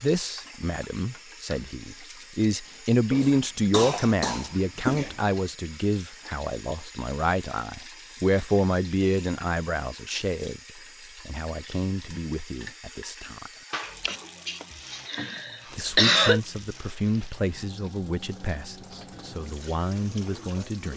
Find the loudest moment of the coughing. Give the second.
16 s.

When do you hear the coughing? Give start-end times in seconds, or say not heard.
3.1-5.2, 13.7-16.4.